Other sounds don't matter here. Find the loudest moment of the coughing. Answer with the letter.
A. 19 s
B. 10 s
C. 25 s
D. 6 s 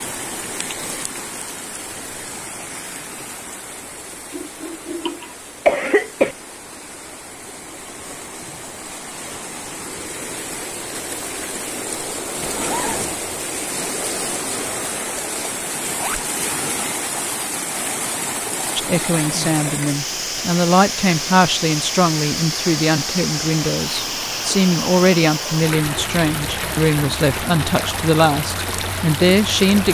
D.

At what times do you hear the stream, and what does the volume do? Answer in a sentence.
The stream can be heard from 0.0 to 29.8 s, getting louder.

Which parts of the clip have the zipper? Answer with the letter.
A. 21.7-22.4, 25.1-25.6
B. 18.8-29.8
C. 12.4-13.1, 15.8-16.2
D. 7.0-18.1
C.